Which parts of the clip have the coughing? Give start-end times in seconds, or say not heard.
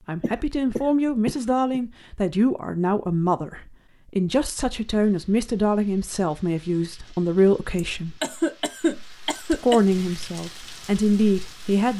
0.2-1.8, 7.8-9.8.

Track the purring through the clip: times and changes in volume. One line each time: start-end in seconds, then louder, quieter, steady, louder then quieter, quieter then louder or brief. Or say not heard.
not heard.